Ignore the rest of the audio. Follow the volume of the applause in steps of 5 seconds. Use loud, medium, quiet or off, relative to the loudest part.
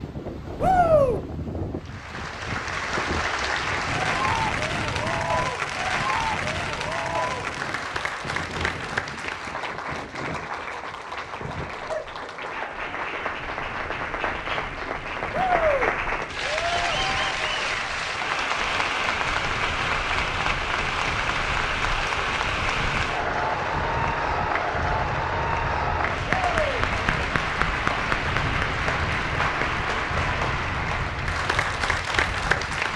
loud, loud, medium, loud, loud, loud, loud.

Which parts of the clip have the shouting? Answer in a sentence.
The shouting can be heard from 0.6 to 1.2 s, from 15.3 to 15.9 s and from 26.3 to 26.9 s.